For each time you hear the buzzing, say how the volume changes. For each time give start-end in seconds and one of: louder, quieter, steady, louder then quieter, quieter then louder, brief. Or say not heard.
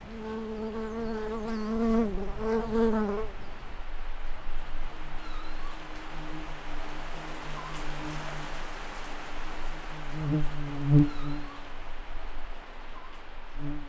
0.0-13.8 quieter then louder.